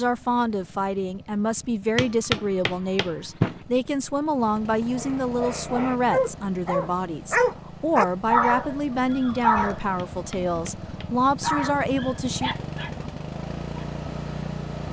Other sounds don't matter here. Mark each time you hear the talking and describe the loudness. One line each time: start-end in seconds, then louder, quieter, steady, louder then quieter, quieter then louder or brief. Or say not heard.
0.0-12.7 steady.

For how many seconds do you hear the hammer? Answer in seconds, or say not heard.
3 s.